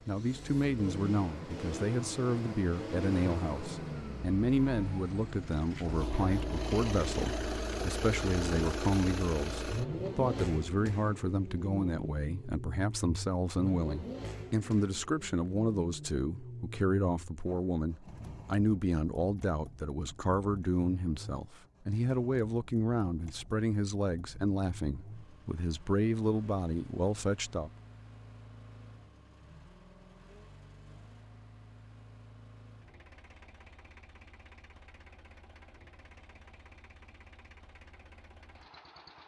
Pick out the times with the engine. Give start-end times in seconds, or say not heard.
0.0-39.2.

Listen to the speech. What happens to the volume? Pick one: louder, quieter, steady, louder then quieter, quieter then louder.
steady.